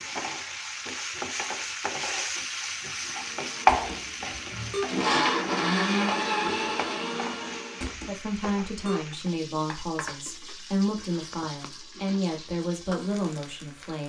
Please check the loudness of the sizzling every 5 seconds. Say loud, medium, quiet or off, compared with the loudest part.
loud, medium, quiet.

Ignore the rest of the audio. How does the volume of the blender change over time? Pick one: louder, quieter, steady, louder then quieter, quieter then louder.
louder then quieter.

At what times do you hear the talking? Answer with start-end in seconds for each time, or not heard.
8.1-14.0.